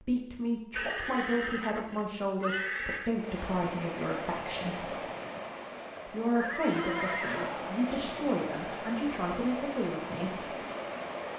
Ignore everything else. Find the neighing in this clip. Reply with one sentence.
You can hear the neighing from 0.8 to 3.1 s and from 6.3 to 7.8 s.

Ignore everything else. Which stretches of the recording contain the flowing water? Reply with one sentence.
The flowing water can be heard from 3.1 to 11.3 s.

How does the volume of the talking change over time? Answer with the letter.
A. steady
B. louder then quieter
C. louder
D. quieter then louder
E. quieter
A.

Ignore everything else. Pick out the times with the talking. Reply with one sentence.
The talking can be heard from 0.0 to 4.9 s and from 6.0 to 10.5 s.